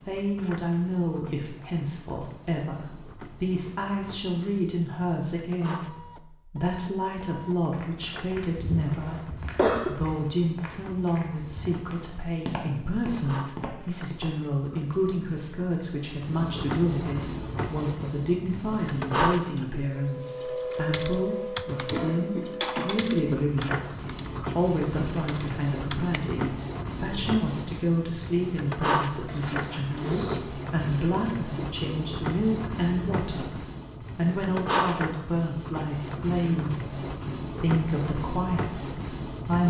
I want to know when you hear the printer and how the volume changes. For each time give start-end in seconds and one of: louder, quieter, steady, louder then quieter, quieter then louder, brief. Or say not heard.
0.0-39.6 louder.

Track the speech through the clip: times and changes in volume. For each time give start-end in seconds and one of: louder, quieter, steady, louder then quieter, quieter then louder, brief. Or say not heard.
0.0-39.6 steady.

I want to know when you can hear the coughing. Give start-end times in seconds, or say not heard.
8.9-9.9, 21.9-23.0, 29.2-30.4.